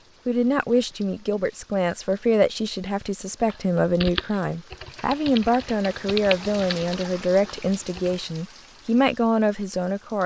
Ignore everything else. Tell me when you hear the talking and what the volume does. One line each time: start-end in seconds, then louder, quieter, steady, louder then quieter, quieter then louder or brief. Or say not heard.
0.2-10.2 steady.